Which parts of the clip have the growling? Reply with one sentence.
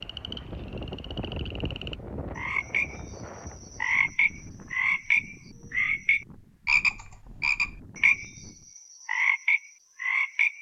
The growling can't be heard in this clip.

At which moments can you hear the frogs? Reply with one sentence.
You can hear the frogs from 0.0 to 10.5 s.